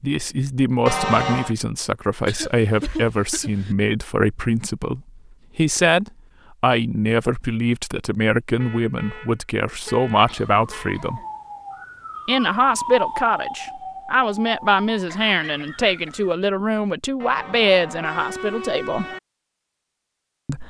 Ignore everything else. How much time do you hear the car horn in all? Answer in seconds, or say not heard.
5 s.